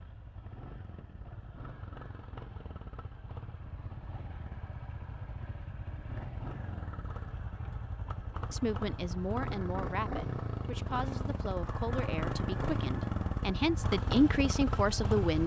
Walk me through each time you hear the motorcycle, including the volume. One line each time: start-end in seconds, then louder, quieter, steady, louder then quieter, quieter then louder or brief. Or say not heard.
0.0-15.4 louder.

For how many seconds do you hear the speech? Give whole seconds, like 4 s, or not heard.
7 s.